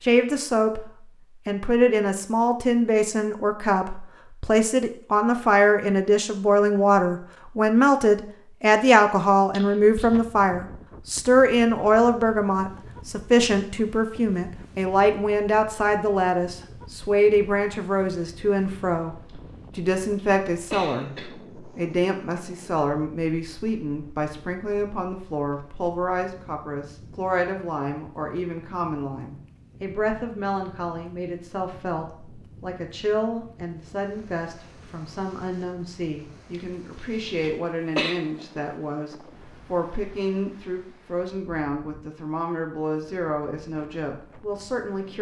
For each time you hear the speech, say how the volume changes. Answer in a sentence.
The speech can be heard briefly from 0.0 to 0.8 s; and from 1.4 to 45.1 s, getting quieter.